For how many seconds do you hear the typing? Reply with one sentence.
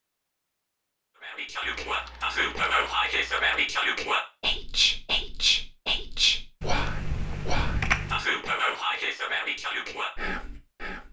You can hear the typing for 4 seconds altogether.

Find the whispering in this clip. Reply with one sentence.
You can hear the whispering from 1.2 to 11.0 s.